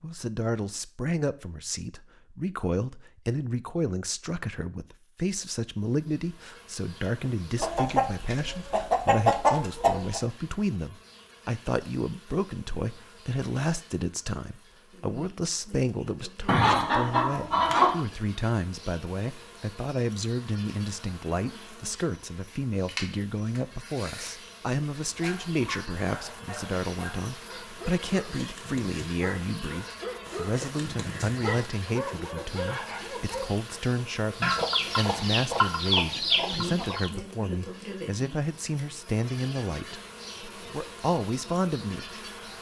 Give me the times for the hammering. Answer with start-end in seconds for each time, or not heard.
not heard.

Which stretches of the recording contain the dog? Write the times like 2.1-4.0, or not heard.
25.1-33.5.